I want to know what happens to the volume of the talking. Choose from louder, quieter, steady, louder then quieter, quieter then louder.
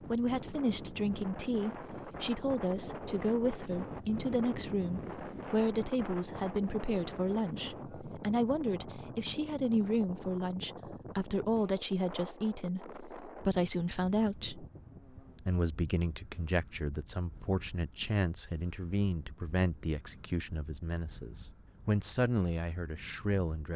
steady.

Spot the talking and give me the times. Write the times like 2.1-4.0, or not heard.
0.1-14.7, 15.4-23.7.